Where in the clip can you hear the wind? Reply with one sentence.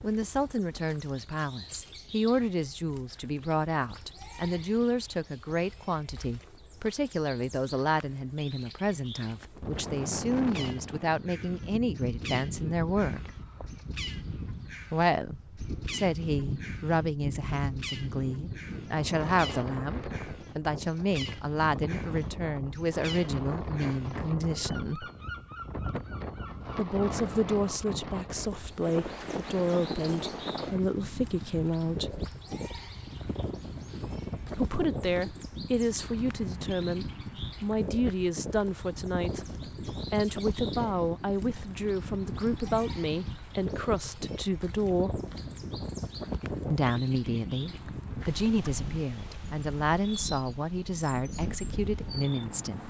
You can hear the wind from 9.6 to 52.8 s.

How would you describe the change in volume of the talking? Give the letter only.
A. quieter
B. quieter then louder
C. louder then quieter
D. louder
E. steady
E.